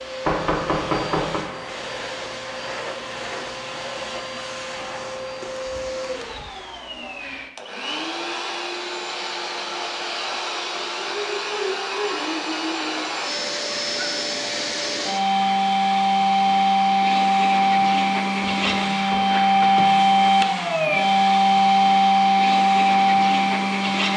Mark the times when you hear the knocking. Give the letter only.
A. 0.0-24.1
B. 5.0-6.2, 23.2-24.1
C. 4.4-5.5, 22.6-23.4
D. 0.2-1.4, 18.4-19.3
D.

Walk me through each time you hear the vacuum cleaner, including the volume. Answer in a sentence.
You can hear the vacuum cleaner from 0.0 to 24.1 s, getting louder.